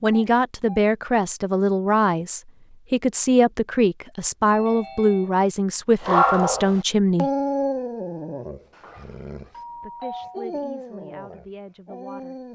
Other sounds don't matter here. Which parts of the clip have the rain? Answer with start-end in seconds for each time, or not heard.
not heard.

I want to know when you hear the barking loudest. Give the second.
6 s.